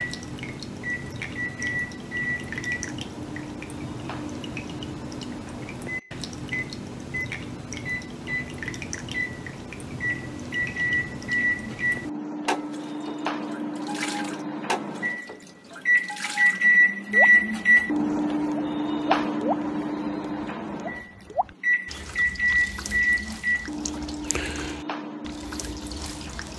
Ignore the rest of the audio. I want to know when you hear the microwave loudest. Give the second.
17 s.